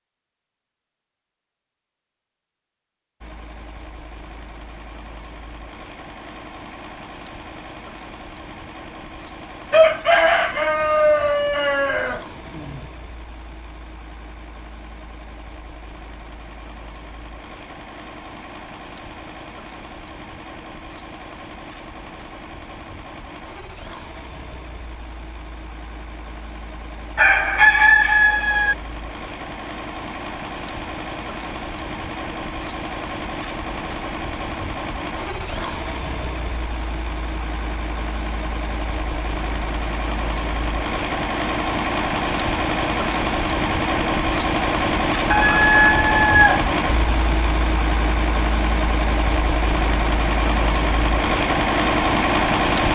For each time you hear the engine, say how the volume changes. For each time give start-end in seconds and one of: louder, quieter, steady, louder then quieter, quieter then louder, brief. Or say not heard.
3.2-52.8 louder.